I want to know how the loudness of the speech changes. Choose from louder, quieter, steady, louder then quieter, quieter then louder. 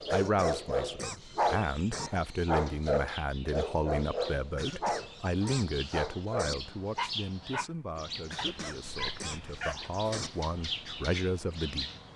quieter then louder.